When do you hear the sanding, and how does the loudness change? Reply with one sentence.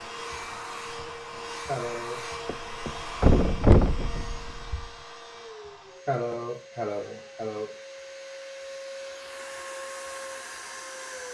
You can't hear the sanding here.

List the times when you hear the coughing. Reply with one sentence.
The coughing can be heard from 1.6 to 2.2 s and from 6.0 to 7.7 s.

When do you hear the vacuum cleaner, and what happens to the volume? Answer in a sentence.
You can hear the vacuum cleaner from 0.0 to 11.2 s, getting quieter then louder.